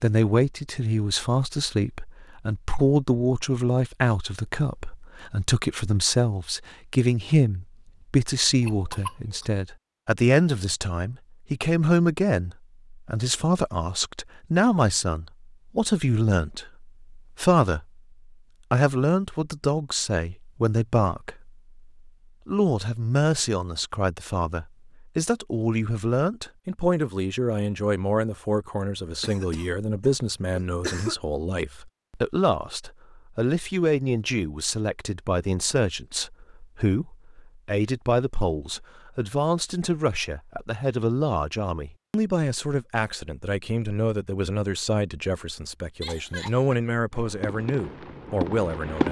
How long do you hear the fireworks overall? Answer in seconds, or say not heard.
2 s.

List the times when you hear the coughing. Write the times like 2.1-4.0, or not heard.
8.6-9.4, 29.2-31.1, 46.0-46.8.